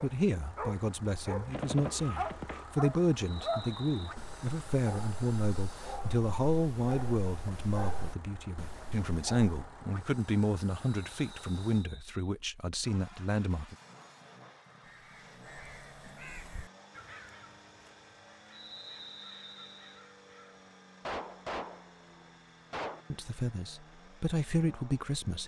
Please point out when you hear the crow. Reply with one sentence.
The crow can be heard from 14.8 to 20.6 s.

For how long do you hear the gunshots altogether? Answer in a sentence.
The gunshots can be heard for 3 seconds in total.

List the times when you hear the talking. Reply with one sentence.
You can hear the talking from 0.0 to 13.8 s and from 23.1 to 25.4 s.